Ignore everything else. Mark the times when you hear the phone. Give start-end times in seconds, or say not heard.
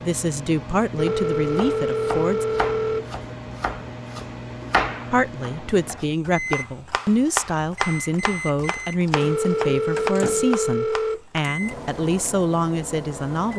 0.9-3.1, 9.1-11.2.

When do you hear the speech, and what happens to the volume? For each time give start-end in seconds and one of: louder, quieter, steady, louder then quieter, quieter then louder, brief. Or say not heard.
0.0-2.5 brief
5.1-13.5 steady.